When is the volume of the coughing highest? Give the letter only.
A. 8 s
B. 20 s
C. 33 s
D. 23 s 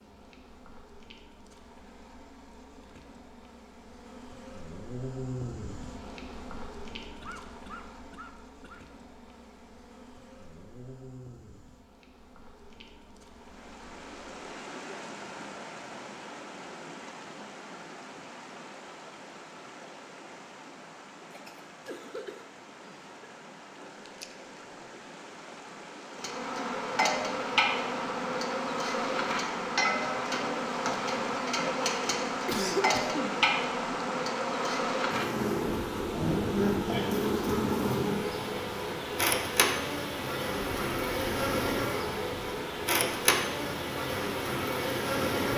C.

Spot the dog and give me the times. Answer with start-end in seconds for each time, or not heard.
not heard.